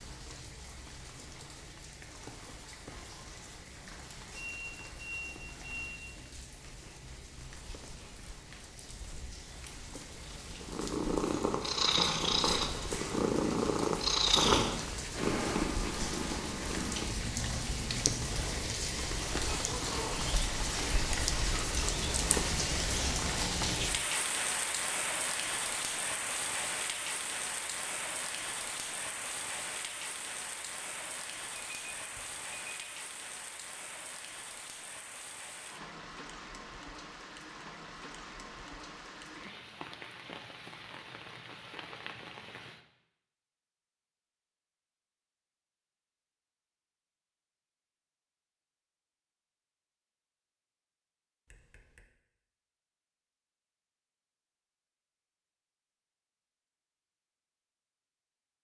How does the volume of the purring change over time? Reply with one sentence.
The loudness of the purring goes down.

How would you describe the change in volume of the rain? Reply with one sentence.
The loudness of the rain goes up, then down.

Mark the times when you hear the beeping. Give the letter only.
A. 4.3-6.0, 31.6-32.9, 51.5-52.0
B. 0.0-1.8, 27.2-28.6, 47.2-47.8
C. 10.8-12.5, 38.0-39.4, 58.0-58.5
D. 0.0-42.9
A.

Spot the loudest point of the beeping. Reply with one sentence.
The volume of the beeping peaks at 5 seconds.